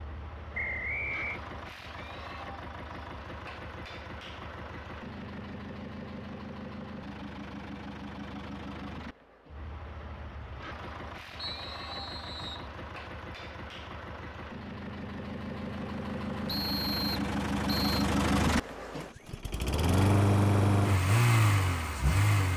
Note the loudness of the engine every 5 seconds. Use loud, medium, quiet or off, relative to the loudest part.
quiet, quiet, quiet, medium, loud.